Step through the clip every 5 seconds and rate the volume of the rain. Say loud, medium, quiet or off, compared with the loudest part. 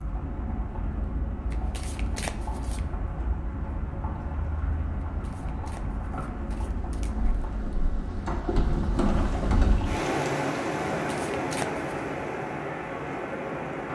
medium, loud, loud.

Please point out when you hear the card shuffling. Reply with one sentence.
You can hear the card shuffling from 1.5 to 2.9 s, from 5.0 to 7.5 s and from 11.0 to 11.8 s.